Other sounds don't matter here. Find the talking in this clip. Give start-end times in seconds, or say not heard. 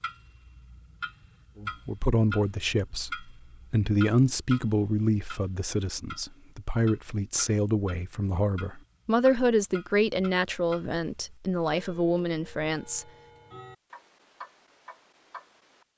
1.6-13.1.